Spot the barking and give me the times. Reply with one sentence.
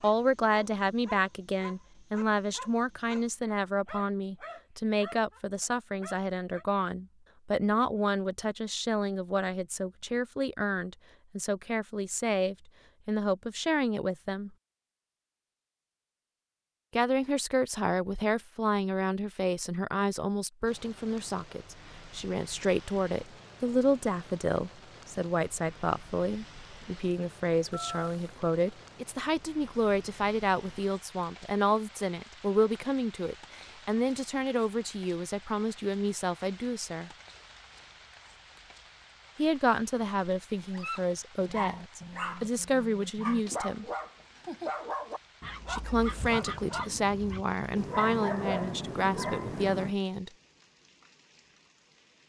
The barking can be heard from 0.0 to 6.7 s and from 40.7 to 50.0 s.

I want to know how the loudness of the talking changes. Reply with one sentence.
The loudness of the talking stays about the same.